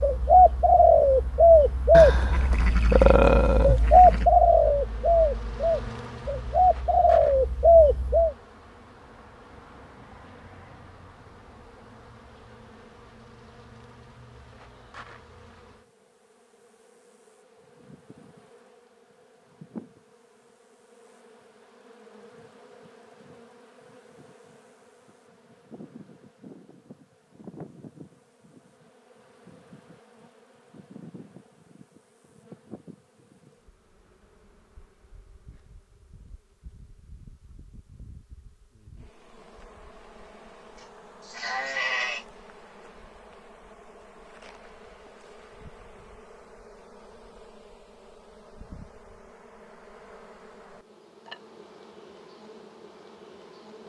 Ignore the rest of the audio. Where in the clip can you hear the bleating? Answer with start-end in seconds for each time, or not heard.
1.9-4.2, 40.8-42.2.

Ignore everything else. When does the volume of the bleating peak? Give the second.
3 s.